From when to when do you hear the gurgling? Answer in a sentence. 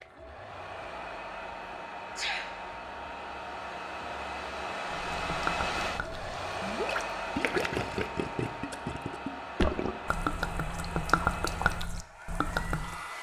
The gurgling can be heard from 4.9 to 13.0 s.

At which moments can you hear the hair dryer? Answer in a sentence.
The hair dryer can be heard from 0.0 to 13.1 s.